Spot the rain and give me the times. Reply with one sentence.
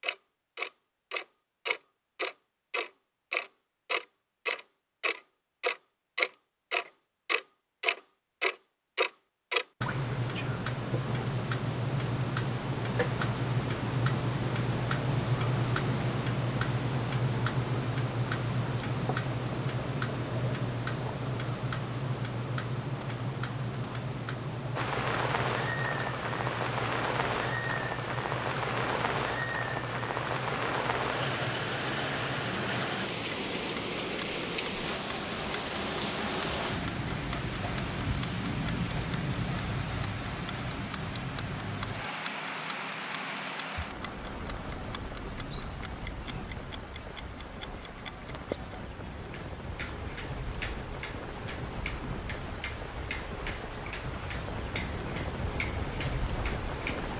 The rain can be heard from 24.8 to 57.1 s.